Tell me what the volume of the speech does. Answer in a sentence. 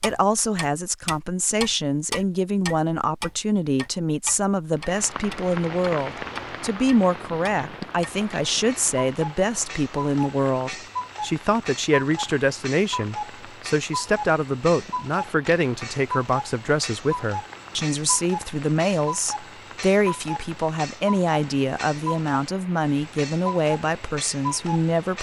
The loudness of the speech stays about the same.